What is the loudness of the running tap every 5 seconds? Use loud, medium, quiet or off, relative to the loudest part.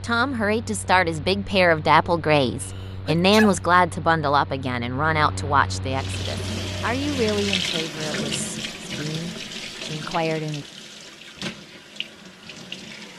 off, loud, medium.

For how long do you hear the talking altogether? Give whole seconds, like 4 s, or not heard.
11 s.